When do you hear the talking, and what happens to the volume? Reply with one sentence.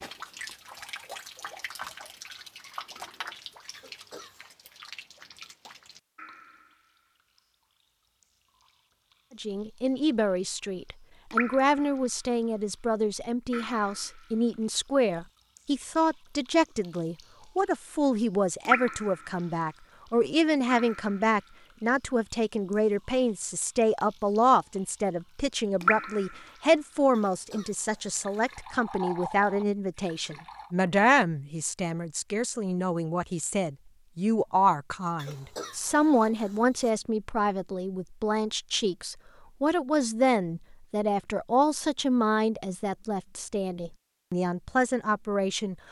The talking can be heard from 9.3 to 45.8 s, at a steady volume.